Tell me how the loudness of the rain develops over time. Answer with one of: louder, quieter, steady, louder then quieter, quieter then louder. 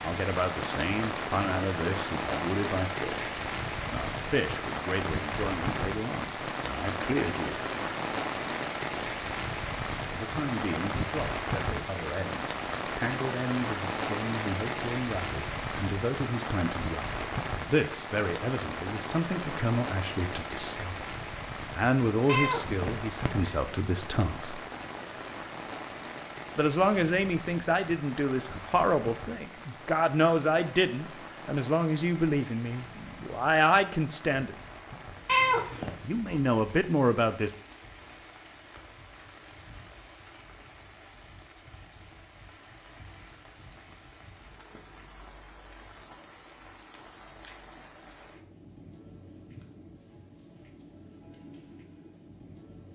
quieter.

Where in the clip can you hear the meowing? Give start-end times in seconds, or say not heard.
22.2-23.7, 35.2-35.9.